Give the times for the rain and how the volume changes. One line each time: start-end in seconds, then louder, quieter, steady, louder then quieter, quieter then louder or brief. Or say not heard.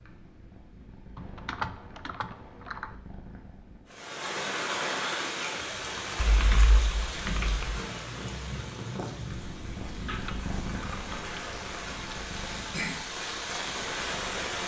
3.9-14.6 quieter then louder.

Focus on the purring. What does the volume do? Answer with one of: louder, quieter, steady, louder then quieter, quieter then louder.
louder then quieter.